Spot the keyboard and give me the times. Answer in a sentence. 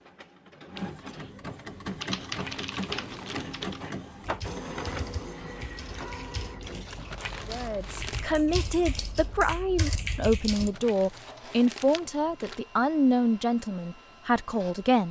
You can hear the keyboard from 2.0 to 10.7 s.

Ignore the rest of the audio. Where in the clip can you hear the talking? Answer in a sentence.
You can hear the talking from 7.5 to 15.0 s.